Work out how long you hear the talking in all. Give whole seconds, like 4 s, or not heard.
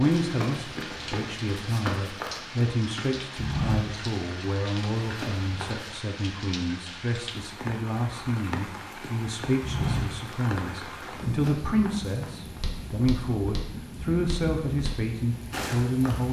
16 s.